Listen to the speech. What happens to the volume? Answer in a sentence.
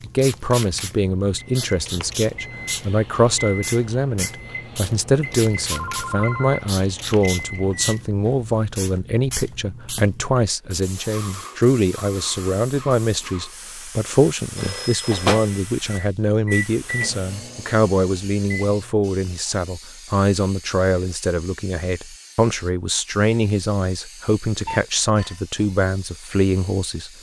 The volume of the speech stays about the same.